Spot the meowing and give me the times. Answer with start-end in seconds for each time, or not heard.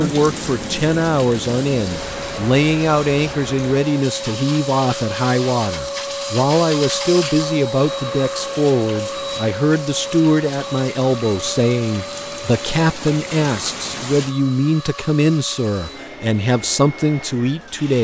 not heard.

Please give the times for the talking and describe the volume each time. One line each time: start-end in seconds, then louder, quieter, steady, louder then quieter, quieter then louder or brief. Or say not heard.
0.0-17.9 steady.